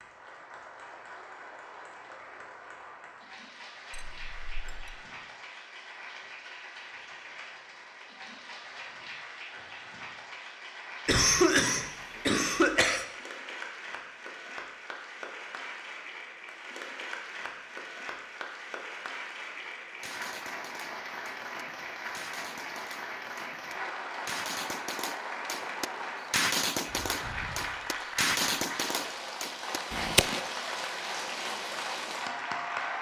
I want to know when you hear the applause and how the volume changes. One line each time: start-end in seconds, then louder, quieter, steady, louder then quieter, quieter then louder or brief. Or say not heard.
0.0-32.9 louder.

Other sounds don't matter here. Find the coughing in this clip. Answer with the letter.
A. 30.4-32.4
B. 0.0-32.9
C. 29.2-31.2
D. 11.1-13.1
D.